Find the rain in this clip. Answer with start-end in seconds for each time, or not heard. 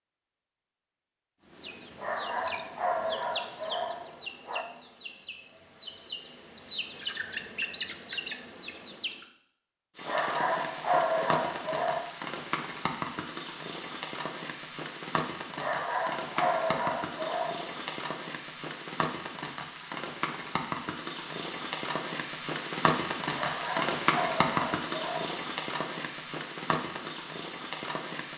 9.9-28.3.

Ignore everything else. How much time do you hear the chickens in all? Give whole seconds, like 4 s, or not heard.
8 s.